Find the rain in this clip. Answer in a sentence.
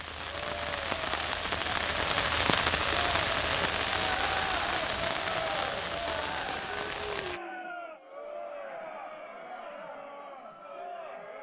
You can hear the rain from 0.0 to 7.4 s.